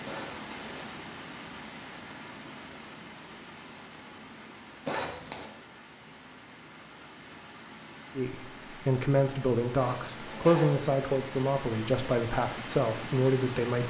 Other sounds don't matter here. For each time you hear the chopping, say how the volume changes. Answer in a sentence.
You can't hear the chopping here.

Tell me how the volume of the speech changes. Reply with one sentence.
The loudness of the speech stays about the same.